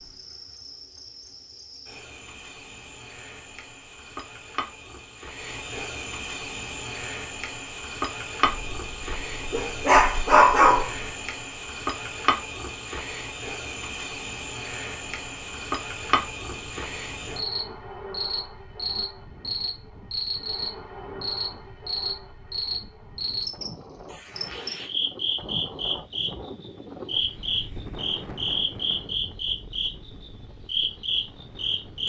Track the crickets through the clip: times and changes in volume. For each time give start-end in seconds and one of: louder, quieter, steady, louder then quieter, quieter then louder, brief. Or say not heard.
0.0-32.0 louder.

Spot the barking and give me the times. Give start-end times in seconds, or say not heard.
8.5-11.1.